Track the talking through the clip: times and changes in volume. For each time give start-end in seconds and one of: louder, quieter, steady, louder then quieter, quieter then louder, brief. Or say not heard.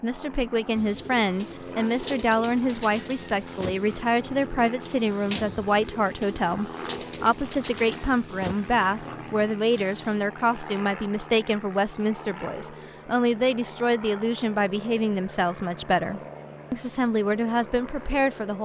0.0-18.5 steady.